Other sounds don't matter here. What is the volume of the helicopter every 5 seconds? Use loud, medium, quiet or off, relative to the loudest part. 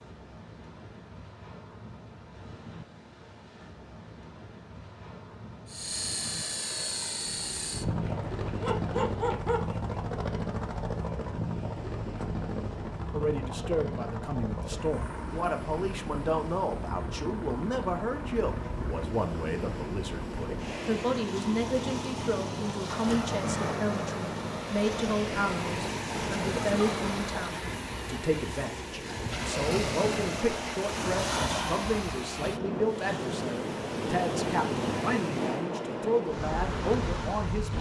off, loud, loud, medium, medium, off, off, off.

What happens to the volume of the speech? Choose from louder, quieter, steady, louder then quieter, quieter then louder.
steady.